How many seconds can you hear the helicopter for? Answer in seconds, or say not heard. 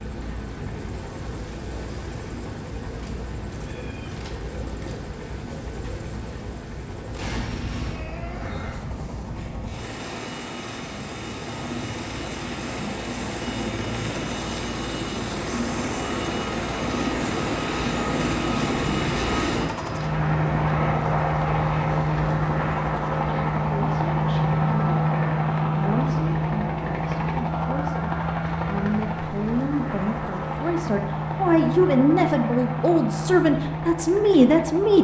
35 s.